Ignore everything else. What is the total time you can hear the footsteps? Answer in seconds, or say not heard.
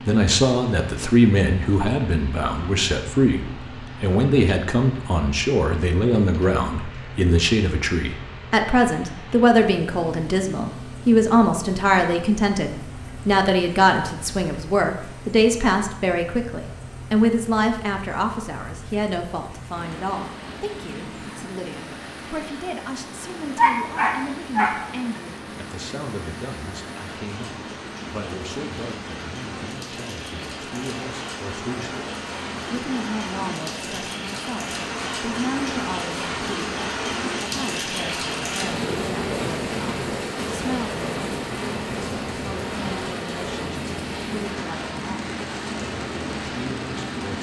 not heard.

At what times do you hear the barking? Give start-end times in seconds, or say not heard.
23.6-24.8.